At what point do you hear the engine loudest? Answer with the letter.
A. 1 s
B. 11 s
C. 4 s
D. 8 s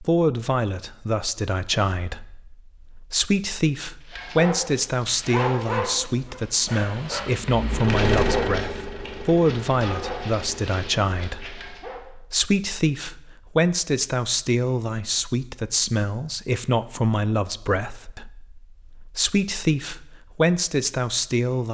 D.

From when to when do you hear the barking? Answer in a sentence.
The barking can be heard from 4.1 to 12.1 s.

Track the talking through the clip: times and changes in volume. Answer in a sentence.
You can hear the talking from 0.0 to 21.6 s, at a steady volume.